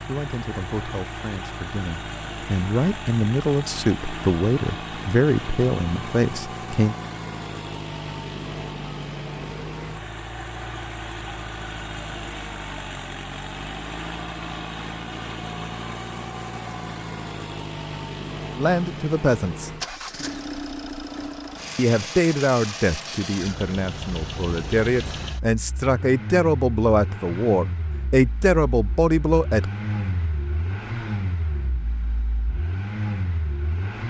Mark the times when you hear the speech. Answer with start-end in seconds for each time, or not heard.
0.1-7.0, 18.6-19.7, 21.8-29.7.